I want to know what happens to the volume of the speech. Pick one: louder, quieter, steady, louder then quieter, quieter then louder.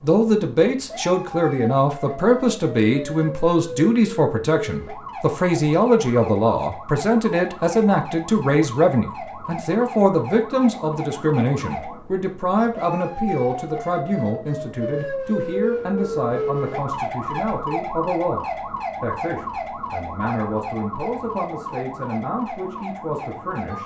quieter.